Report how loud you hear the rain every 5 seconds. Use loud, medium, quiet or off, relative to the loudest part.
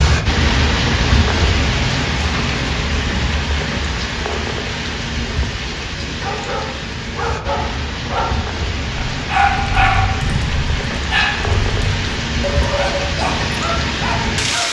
loud, medium, loud.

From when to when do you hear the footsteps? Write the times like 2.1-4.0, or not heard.
not heard.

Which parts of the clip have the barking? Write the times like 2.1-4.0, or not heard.
6.2-14.6.